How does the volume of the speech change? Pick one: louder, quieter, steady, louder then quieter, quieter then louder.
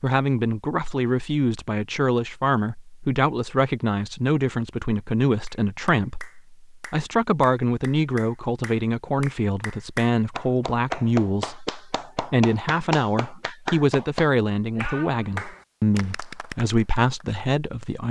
steady.